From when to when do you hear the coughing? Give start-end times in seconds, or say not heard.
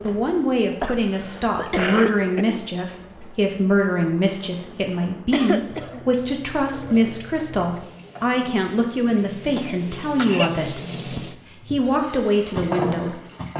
0.8-2.6, 5.3-6.0, 9.6-10.6.